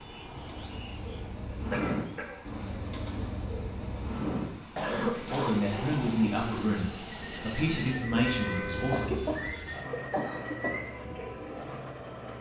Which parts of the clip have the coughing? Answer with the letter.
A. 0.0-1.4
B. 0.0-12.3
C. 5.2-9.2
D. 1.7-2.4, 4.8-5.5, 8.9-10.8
D.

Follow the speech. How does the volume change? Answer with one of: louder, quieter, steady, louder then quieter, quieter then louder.
quieter then louder.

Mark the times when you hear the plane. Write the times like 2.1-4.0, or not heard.
0.0-12.3.